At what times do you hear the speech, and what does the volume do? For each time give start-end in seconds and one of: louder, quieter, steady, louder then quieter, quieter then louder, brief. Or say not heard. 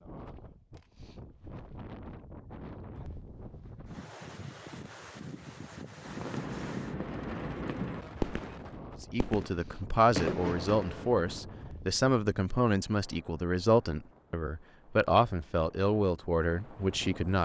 9.0-17.4 steady.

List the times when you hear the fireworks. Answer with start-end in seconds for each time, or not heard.
6.0-11.3.